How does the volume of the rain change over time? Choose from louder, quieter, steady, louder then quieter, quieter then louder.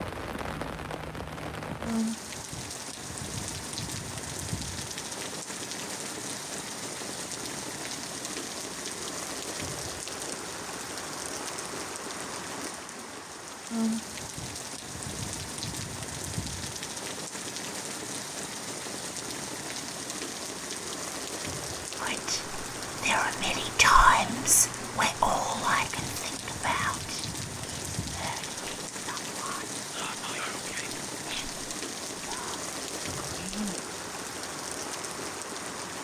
steady.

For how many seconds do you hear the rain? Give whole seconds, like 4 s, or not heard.
36 s.